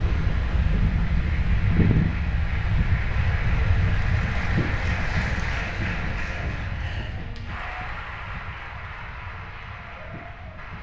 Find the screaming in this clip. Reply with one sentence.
You can't hear the screaming here.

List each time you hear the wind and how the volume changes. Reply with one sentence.
The wind can be heard from 0.0 to 10.7 s, getting quieter.